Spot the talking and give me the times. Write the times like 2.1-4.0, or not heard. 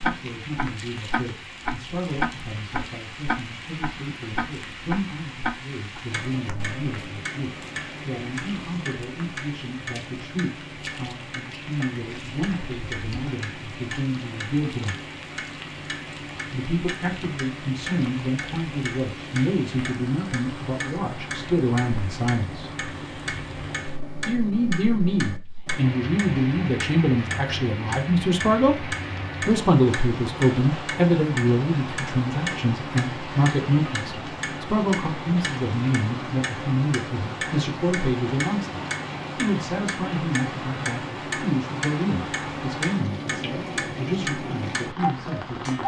0.0-14.9, 16.5-22.7, 24.2-28.9, 29.4-45.8.